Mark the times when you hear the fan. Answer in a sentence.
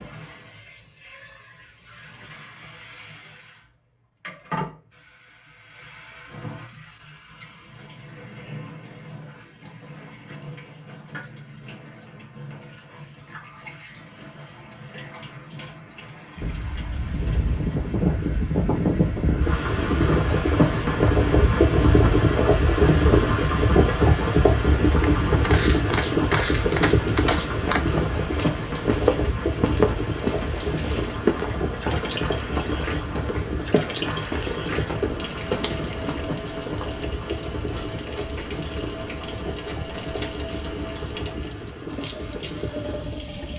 You can hear the fan from 16.4 to 43.5 s.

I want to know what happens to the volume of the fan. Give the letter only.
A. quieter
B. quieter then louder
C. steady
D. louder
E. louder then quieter
A.